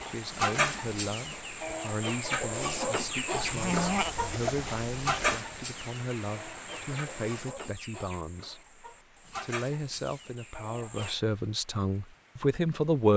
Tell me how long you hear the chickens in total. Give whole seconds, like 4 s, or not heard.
11 s.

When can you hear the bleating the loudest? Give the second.
4 s.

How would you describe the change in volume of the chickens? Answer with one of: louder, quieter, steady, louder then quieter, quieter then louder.
quieter.